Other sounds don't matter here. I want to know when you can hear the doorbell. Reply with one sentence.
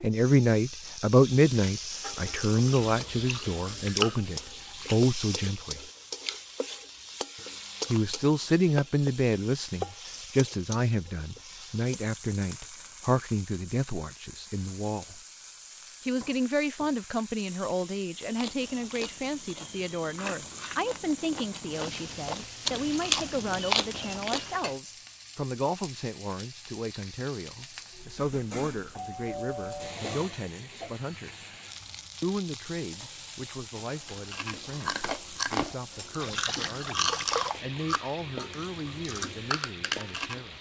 The doorbell can be heard from 28.9 to 30.0 s.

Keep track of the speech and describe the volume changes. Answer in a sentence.
The volume of the speech goes down.